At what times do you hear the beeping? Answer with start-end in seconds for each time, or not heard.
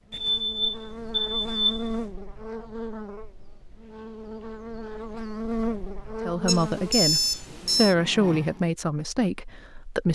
0.1-2.1, 6.5-8.0.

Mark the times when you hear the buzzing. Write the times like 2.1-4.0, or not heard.
0.0-8.7.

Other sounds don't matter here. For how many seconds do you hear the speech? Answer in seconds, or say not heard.
4 s.